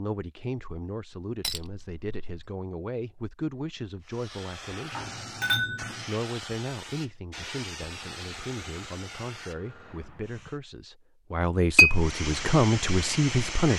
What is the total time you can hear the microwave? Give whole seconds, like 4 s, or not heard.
not heard.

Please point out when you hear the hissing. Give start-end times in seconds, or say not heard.
4.0-10.6, 11.8-13.7.